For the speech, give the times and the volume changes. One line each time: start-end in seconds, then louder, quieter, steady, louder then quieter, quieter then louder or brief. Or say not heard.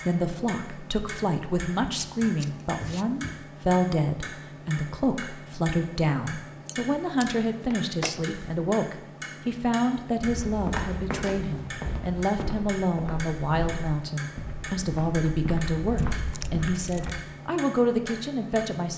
0.0-18.9 steady.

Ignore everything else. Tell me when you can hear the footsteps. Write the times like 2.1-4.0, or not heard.
10.2-17.2.